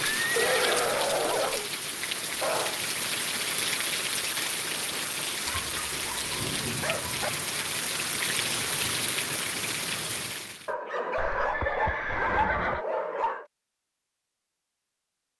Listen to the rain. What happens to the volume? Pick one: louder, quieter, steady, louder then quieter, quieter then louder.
steady.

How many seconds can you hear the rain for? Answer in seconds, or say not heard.
11 s.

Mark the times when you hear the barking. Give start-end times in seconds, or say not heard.
0.3-1.6, 2.4-2.9, 5.5-7.3, 10.7-13.4.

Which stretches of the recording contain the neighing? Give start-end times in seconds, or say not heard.
0.1-1.7, 11.2-12.8.